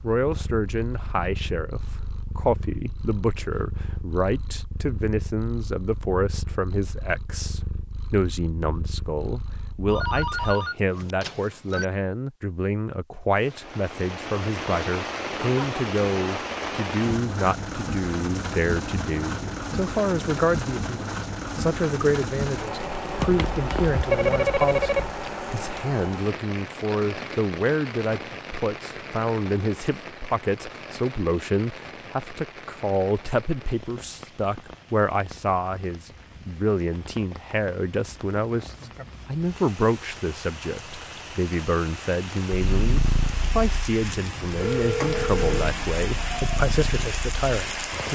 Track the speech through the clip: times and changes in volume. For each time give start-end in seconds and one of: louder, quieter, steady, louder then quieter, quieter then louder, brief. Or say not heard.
0.0-48.1 steady.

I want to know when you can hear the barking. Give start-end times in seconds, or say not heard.
not heard.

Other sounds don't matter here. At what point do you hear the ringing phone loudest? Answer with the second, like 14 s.
24 s.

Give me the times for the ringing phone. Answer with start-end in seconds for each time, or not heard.
9.8-11.8, 23.1-25.1, 44.0-45.6.